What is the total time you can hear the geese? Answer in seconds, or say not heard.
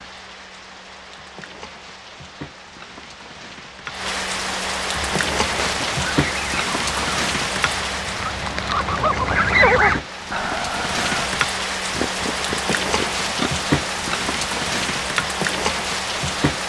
6 s.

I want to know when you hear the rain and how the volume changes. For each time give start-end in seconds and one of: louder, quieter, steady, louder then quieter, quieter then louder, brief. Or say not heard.
0.0-16.6 louder.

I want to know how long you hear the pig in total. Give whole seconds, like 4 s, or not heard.
2 s.